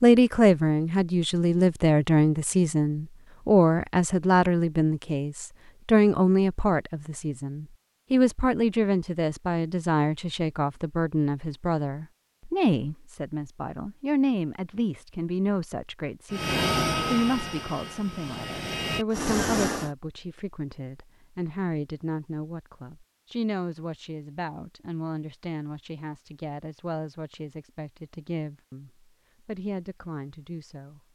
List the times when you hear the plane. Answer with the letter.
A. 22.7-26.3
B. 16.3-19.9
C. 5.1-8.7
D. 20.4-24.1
B.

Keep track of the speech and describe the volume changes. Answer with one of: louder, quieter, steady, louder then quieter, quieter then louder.
quieter.